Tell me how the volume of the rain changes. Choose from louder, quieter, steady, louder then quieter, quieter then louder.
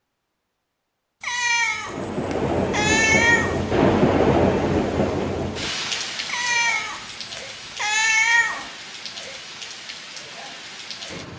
quieter.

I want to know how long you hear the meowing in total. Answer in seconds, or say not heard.
5 s.